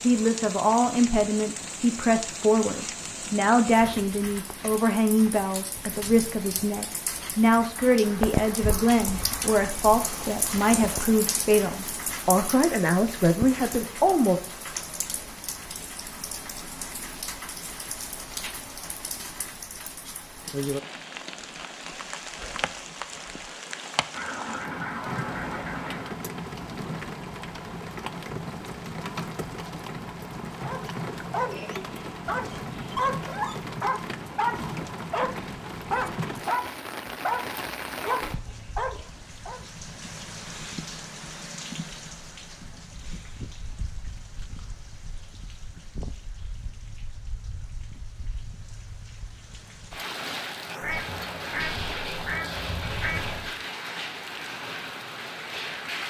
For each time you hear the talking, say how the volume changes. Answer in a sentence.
The talking can be heard from 0.0 to 14.4 s, at a steady volume.